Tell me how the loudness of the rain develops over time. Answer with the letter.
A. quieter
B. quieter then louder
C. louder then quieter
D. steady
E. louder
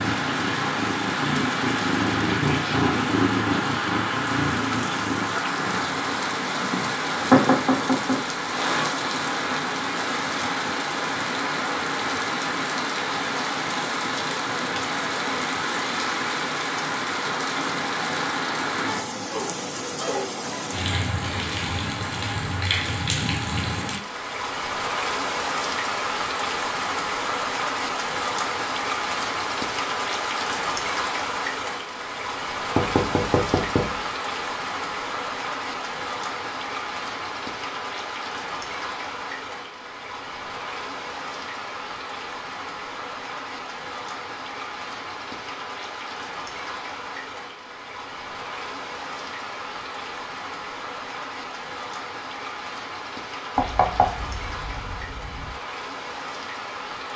A.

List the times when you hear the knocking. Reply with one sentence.
You can hear the knocking from 7.3 to 8.8 s, from 32.8 to 34.0 s and from 53.5 to 55.5 s.